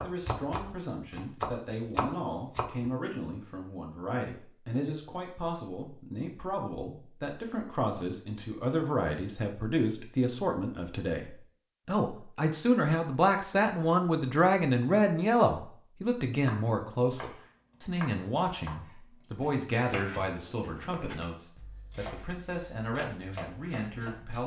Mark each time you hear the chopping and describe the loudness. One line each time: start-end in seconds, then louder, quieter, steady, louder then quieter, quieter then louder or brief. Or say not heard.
0.0-2.9 brief
16.4-24.4 steady.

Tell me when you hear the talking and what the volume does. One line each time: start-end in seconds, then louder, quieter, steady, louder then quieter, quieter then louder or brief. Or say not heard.
0.0-24.4 louder then quieter.